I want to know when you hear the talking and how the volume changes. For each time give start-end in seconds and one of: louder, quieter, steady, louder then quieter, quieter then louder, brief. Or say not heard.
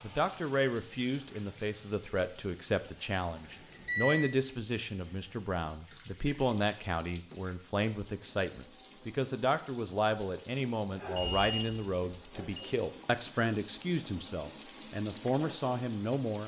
0.0-16.4 steady.